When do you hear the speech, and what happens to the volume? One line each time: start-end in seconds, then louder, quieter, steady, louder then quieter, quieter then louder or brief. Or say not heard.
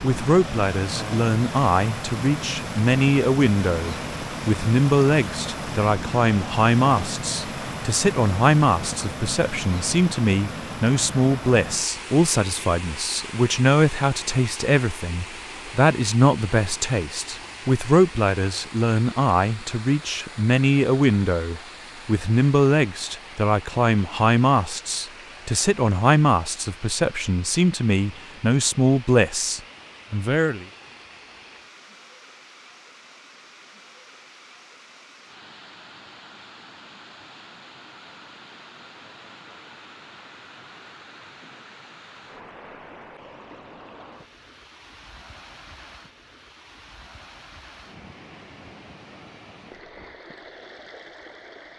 0.0-30.6 steady.